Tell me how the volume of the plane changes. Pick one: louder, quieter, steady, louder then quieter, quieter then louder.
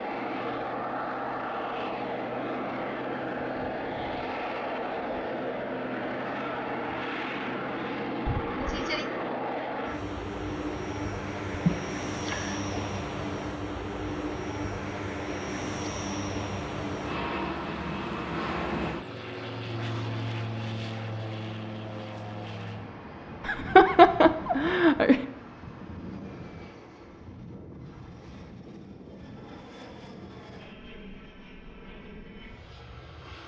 quieter.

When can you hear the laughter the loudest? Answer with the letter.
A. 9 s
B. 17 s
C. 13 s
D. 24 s
D.